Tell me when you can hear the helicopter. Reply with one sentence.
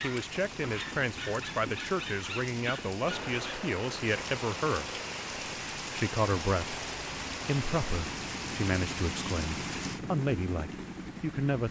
The helicopter can be heard from 3.0 to 11.6 s.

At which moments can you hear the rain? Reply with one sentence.
You can hear the rain from 0.0 to 11.6 s.